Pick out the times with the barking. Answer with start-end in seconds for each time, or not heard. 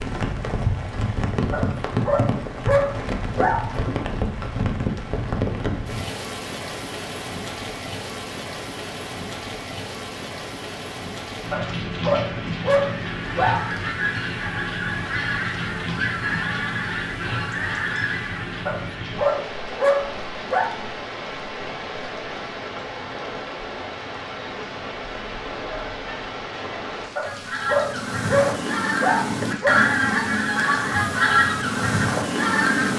1.5-3.7, 11.5-13.7, 18.6-20.7, 27.1-29.8.